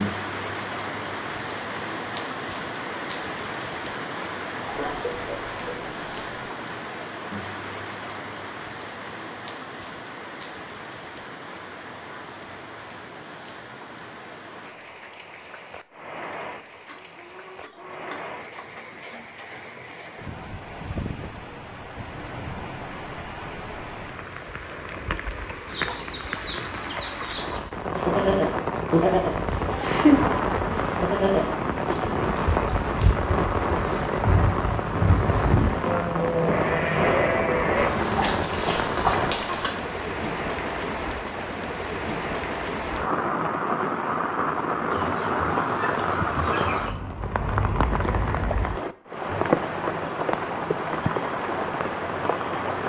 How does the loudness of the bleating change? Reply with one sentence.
The loudness of the bleating goes down, then up.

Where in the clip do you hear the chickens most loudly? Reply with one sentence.
The loudest moment of the chickens is at 39 seconds.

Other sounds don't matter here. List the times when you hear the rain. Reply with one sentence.
You can hear the rain from 0.0 to 52.8 s.